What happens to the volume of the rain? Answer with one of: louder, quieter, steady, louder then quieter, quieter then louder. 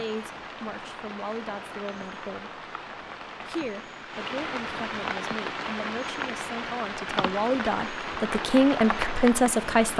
louder.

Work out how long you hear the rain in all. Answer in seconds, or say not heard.
10 s.